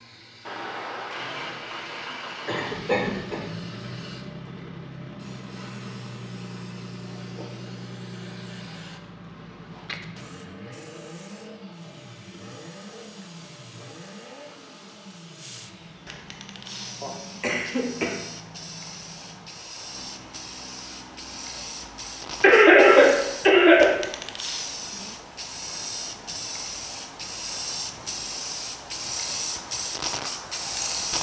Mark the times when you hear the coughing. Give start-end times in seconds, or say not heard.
2.5-3.4, 17.0-18.1, 22.4-23.9.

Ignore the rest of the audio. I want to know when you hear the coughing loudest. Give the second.
23 s.